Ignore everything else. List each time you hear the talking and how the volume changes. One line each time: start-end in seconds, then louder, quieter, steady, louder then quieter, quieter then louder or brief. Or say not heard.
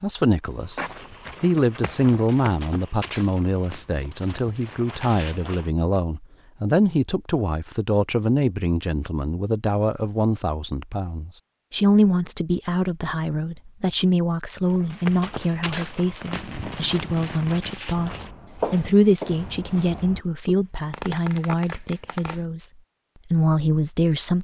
0.0-0.8 brief
1.4-22.7 steady
23.3-24.3 brief.